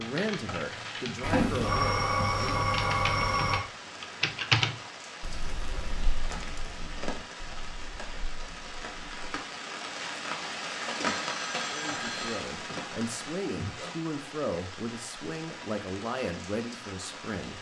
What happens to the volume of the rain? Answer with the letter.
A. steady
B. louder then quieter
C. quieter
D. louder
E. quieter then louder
B.